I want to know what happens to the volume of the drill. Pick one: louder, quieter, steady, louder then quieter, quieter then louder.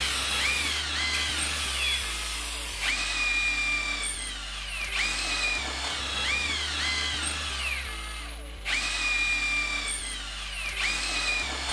steady.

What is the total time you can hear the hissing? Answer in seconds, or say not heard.
3 s.